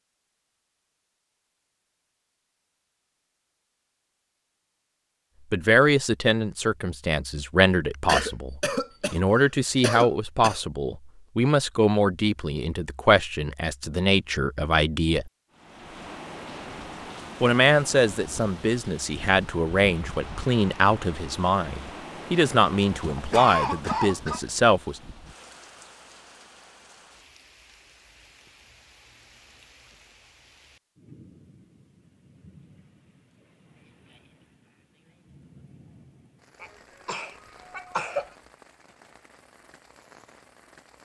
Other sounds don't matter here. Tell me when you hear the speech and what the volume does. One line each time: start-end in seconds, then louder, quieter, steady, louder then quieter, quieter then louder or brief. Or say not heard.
5.5-15.3 steady
17.4-25.0 steady.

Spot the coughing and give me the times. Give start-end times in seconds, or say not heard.
8.1-10.6, 23.1-24.4, 36.6-38.3.